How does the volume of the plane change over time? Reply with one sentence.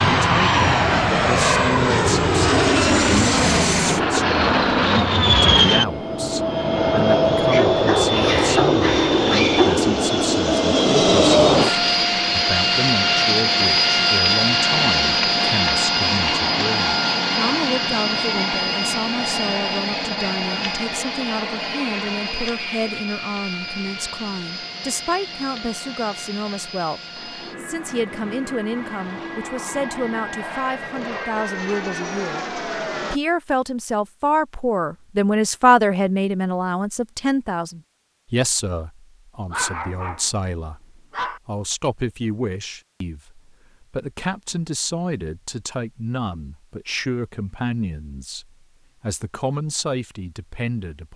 The volume of the plane goes down.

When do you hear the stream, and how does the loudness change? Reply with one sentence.
You can't hear the stream here.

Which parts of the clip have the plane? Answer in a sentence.
You can hear the plane from 0.0 to 33.2 s.